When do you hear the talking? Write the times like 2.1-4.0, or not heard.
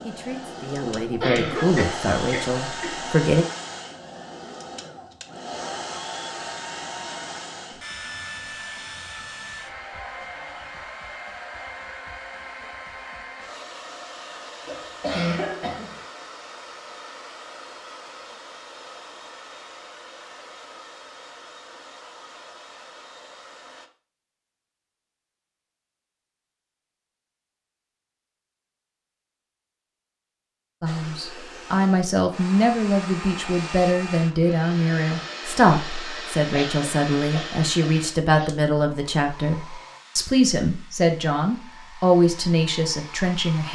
0.0-3.5, 30.8-43.7.